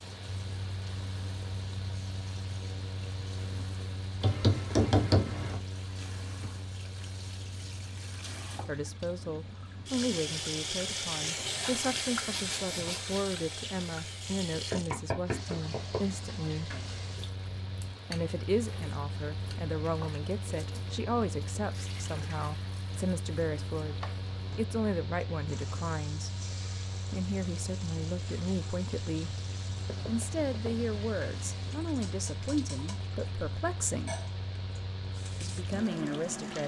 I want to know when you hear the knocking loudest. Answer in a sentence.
The loudest moment of the knocking is at 5 seconds.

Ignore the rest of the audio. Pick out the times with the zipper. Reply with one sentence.
The zipper can be heard from 12.2 to 13.2 s.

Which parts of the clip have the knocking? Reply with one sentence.
You can hear the knocking from 4.2 to 5.6 s, from 14.7 to 16.1 s and from 29.9 to 30.7 s.